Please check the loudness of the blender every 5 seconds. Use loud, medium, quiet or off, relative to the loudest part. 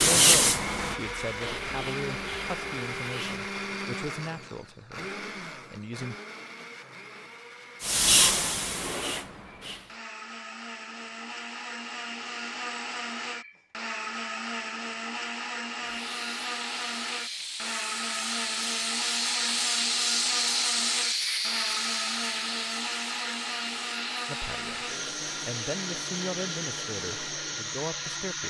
loud, medium, loud, loud, loud, loud.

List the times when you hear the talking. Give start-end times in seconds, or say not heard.
0.0-6.2, 24.2-28.4.